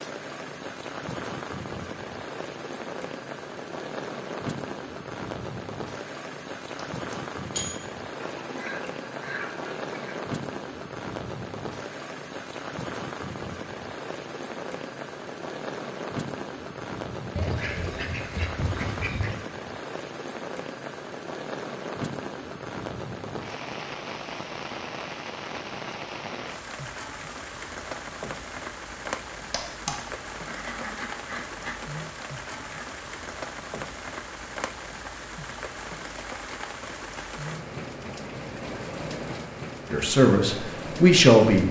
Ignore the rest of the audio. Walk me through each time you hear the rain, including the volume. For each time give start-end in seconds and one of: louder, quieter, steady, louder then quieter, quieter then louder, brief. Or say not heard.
0.0-41.6 steady.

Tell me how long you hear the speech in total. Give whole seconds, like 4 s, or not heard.
2 s.